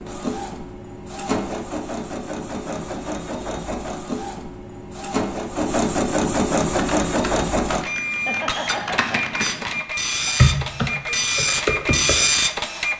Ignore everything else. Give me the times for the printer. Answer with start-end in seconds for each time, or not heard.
0.0-12.9.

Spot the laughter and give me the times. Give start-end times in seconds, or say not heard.
8.1-9.3.